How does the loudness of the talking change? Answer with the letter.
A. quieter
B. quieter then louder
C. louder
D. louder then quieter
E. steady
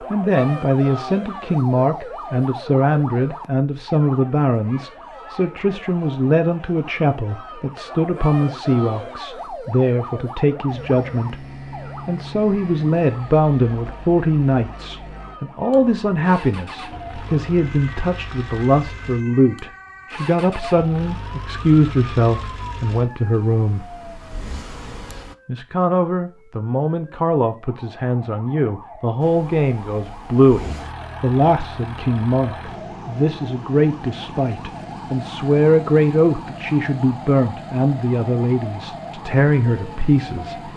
E.